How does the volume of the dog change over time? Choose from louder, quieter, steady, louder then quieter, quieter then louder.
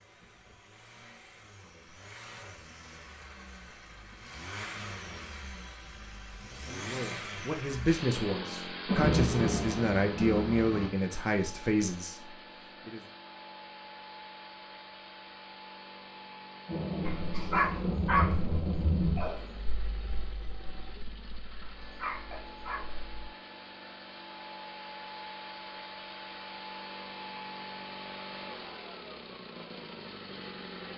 quieter then louder.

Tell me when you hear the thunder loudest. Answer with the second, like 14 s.
9 s.